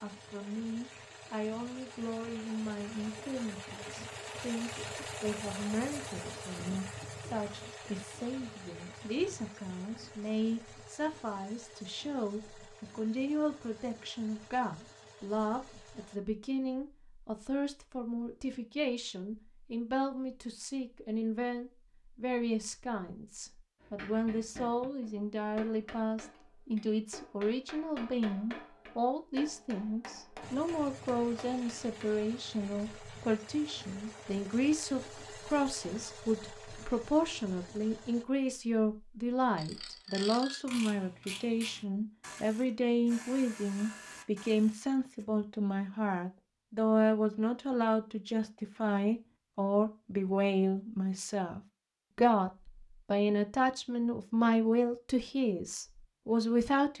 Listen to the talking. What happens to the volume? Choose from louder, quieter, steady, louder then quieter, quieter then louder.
louder.